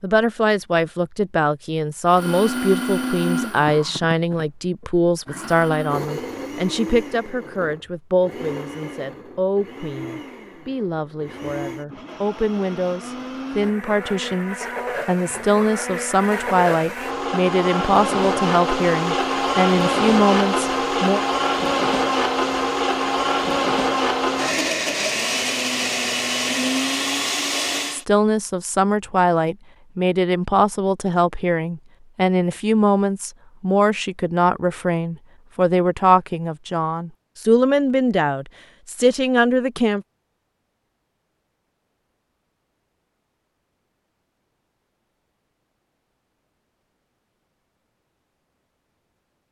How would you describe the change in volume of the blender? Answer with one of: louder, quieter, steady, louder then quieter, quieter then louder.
quieter then louder.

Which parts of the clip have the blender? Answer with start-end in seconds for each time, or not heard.
2.0-28.1.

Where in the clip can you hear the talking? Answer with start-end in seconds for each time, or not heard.
0.0-21.2, 27.9-40.0.